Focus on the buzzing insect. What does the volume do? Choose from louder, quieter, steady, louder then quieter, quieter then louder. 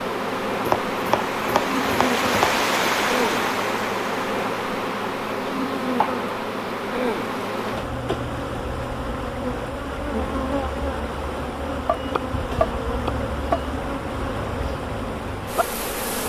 steady.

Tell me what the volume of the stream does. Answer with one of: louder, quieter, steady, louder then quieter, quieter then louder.
quieter.